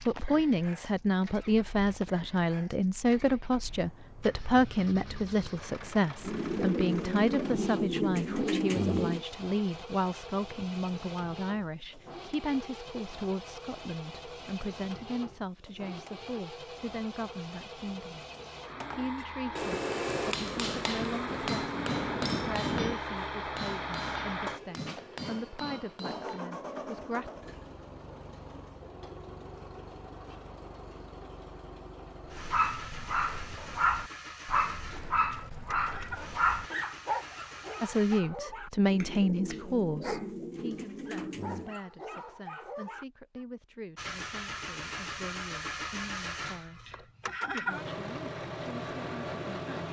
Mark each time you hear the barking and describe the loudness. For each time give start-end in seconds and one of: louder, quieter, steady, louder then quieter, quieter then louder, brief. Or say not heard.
32.2-43.5 quieter.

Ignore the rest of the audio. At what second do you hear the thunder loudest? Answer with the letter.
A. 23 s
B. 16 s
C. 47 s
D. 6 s
A.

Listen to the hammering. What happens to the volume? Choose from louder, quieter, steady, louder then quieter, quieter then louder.
quieter.